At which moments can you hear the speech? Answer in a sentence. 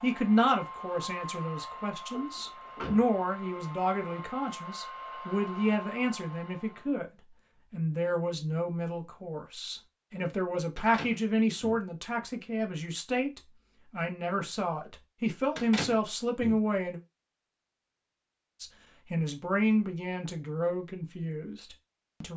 The speech can be heard from 0.0 to 7.1 s, from 7.7 to 17.0 s and from 18.6 to 22.3 s.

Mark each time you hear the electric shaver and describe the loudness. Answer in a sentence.
You can't hear the electric shaver here.